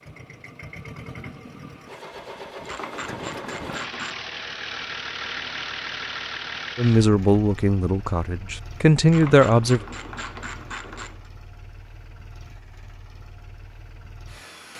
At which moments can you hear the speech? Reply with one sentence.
You can hear the speech from 6.8 to 9.8 s.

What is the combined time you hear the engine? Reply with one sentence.
The engine can be heard for 15 seconds in total.